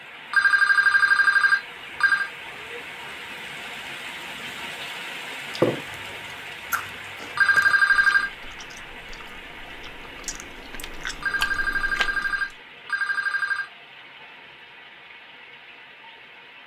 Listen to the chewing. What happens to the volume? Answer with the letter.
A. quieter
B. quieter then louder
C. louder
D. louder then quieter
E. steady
B.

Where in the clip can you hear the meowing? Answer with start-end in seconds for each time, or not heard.
not heard.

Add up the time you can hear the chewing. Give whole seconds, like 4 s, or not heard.
7 s.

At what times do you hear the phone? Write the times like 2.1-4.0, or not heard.
0.3-2.3, 7.3-8.3, 11.2-13.7.